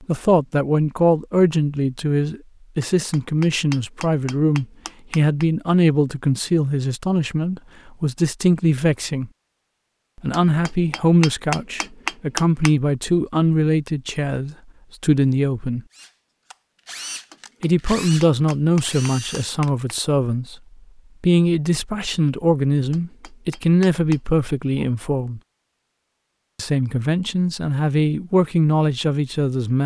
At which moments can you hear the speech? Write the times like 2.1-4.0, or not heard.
0.0-9.3, 10.2-15.8, 17.6-20.6, 21.2-25.4, 26.6-29.8.